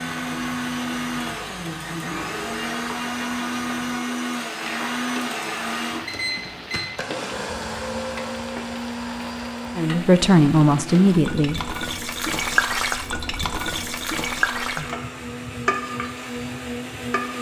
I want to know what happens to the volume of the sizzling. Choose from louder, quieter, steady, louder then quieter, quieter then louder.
louder.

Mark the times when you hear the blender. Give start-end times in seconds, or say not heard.
0.0-17.3.